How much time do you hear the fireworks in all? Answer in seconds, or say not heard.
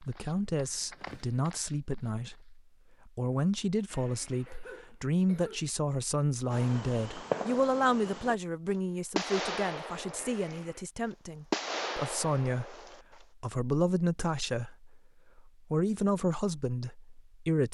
5 s.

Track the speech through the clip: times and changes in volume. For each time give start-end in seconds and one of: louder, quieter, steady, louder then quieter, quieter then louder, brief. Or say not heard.
0.0-17.6 steady.